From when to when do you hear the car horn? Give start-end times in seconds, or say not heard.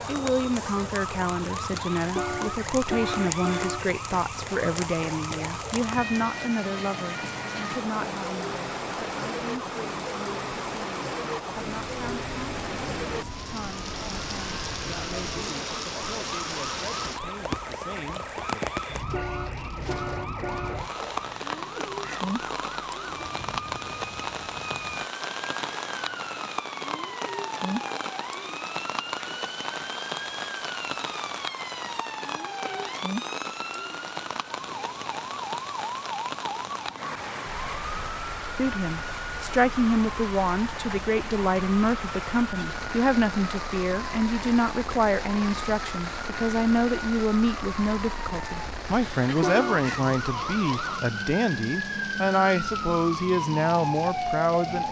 2.1-3.9, 19.1-20.9, 49.4-49.9.